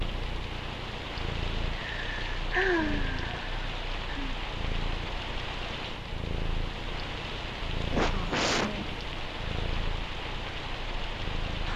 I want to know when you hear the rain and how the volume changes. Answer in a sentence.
The rain can be heard from 0.0 to 11.7 s, at a steady volume.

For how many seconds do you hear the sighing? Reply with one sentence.
You can hear the sighing for 4 seconds altogether.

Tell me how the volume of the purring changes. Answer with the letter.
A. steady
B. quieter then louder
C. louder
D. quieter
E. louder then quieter
A.